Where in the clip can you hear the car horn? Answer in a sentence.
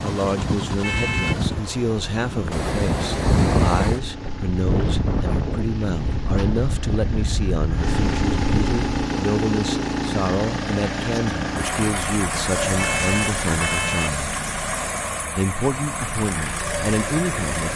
You can hear the car horn from 0.8 to 1.4 s and from 12.8 to 14.2 s.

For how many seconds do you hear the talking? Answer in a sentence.
The talking can be heard for 17 seconds in total.